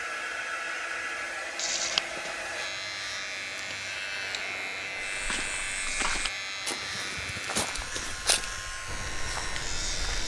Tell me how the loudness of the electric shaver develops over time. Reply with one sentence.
The loudness of the electric shaver stays about the same.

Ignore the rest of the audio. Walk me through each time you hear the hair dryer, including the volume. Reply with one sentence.
The hair dryer can be heard from 0.0 to 10.2 s, getting quieter.